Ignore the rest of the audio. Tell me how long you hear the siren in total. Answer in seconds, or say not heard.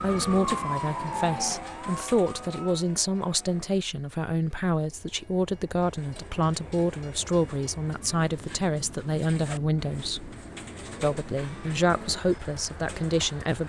3 s.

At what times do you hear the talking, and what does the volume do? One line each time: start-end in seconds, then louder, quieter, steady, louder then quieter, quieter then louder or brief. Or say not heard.
0.0-10.3 steady
11.0-13.6 brief.